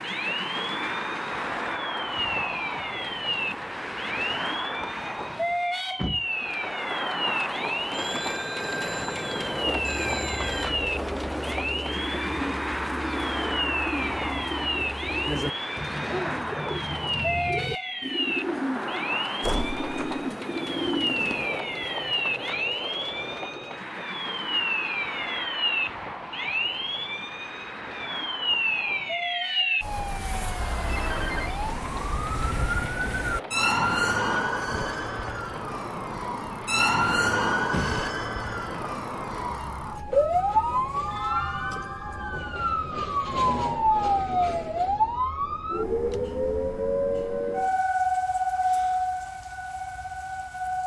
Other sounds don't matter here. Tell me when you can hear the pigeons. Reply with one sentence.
You can hear the pigeons from 9.6 to 21.4 s.